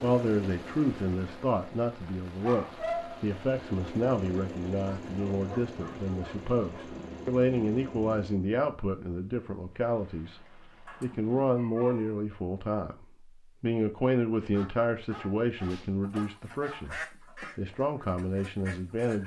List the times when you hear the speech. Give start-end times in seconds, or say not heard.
0.0-19.2.